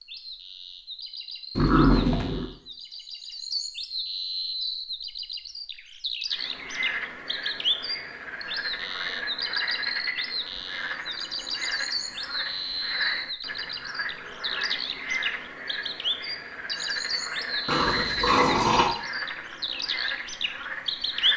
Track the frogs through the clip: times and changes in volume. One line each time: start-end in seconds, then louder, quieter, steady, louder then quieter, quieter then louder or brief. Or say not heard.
6.3-21.3 steady.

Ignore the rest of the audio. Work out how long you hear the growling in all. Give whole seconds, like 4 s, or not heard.
2 s.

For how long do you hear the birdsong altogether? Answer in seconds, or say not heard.
21 s.